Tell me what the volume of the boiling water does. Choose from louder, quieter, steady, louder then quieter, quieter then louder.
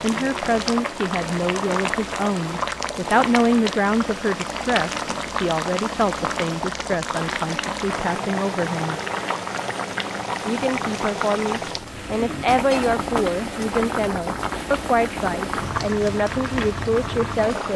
steady.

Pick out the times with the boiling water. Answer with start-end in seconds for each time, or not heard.
0.0-17.7.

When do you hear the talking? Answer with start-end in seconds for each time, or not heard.
0.0-8.9, 10.4-17.7.